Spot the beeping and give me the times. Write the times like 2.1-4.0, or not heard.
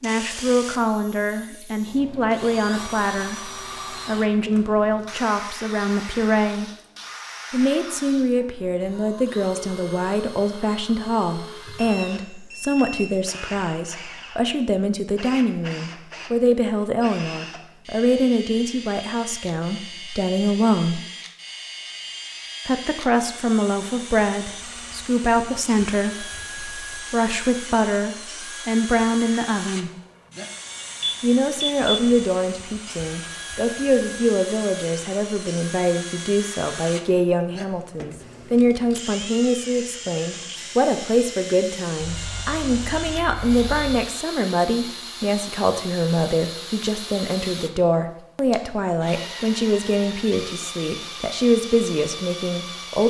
11.8-13.2, 31.0-32.0, 42.0-44.0.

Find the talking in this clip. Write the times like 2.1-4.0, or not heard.
0.0-6.7, 7.5-21.0, 22.6-29.9, 31.2-53.0.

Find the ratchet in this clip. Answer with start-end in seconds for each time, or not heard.
not heard.